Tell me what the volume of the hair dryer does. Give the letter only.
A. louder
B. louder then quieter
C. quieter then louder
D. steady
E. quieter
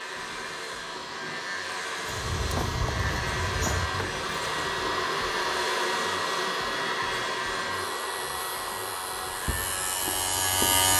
B.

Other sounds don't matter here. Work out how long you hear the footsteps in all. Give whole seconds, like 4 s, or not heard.
4 s.